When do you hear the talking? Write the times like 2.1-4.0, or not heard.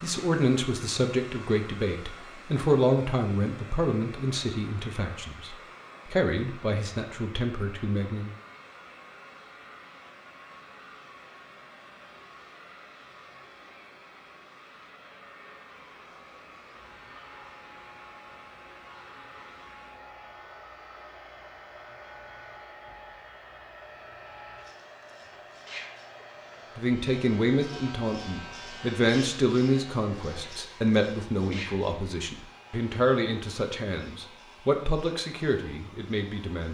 0.0-8.3, 26.8-36.7.